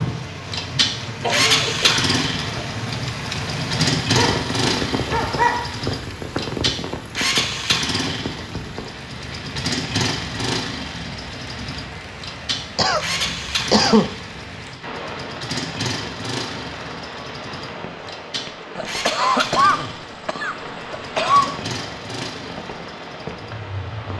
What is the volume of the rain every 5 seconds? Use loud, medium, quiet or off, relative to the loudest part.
loud, loud, medium, medium, medium.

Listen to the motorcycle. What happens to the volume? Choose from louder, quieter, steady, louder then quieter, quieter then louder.
quieter.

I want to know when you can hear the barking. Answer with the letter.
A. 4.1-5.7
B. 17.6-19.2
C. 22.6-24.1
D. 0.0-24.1
A.